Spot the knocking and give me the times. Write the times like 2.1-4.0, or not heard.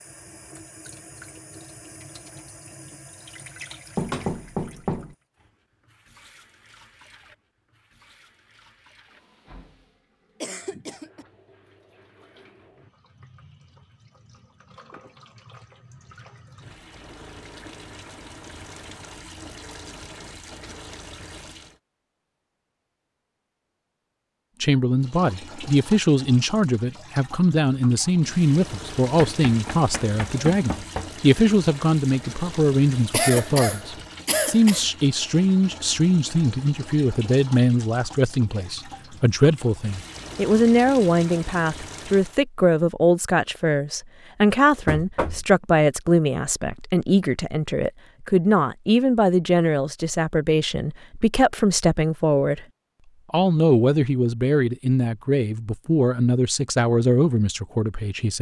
4.0-5.2, 29.1-31.1, 44.9-45.5.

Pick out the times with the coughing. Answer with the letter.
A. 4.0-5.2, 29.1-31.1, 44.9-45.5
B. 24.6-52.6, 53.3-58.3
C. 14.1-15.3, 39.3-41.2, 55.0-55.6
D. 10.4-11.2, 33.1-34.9
D.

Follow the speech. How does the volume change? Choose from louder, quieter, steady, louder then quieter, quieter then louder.
steady.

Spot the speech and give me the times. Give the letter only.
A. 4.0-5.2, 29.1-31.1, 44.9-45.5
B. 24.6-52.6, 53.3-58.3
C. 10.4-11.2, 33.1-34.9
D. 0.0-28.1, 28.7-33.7
B.